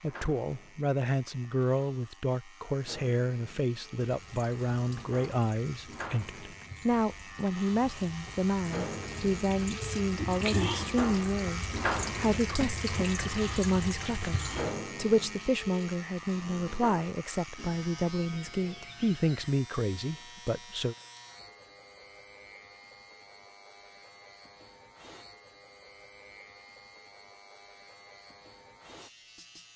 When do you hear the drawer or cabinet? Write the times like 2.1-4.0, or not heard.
not heard.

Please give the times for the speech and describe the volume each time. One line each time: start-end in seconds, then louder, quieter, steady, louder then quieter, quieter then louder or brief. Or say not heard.
0.0-20.9 steady.